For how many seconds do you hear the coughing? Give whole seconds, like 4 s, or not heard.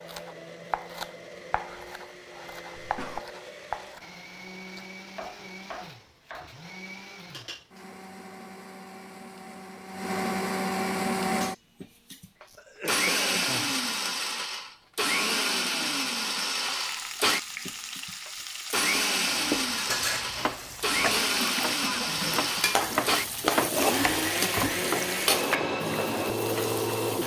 3 s.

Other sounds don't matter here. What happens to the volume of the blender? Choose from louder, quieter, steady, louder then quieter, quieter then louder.
louder.